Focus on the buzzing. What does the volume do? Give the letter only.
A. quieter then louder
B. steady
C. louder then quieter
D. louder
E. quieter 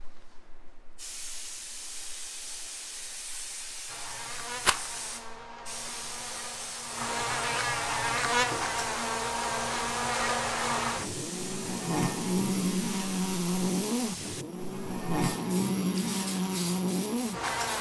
D.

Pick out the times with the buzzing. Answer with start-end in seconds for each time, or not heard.
3.9-17.7.